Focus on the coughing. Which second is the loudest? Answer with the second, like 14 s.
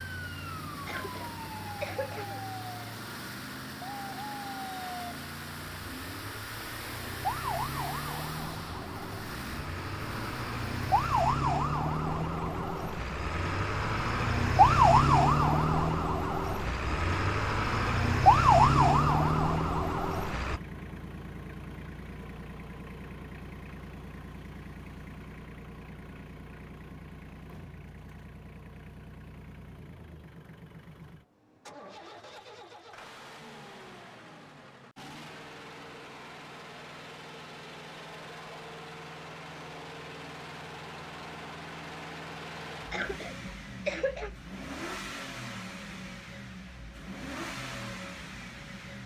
44 s.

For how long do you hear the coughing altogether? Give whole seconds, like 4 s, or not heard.
3 s.